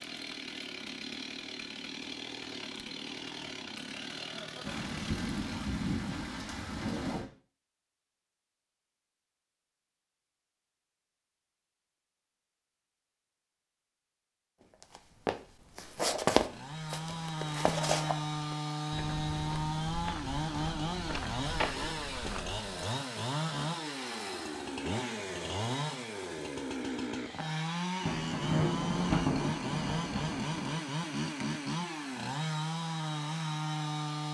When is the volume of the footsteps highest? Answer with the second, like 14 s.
16 s.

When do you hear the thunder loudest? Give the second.
29 s.